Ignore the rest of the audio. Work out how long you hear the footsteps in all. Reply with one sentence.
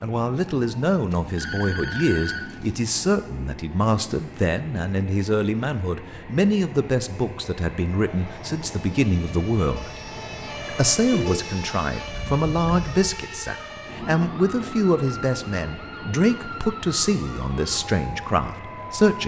You can't hear the footsteps here.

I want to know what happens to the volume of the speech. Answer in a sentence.
The volume of the speech stays about the same.